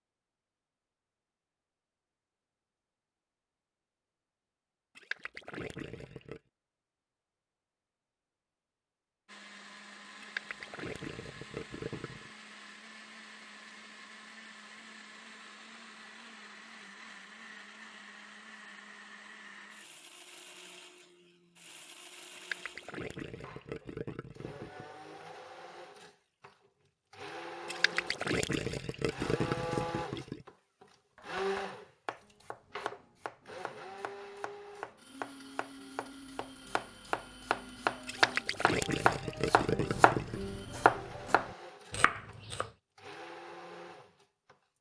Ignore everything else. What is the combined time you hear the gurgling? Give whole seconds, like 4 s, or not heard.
11 s.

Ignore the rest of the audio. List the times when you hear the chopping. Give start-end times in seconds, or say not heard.
31.1-42.7.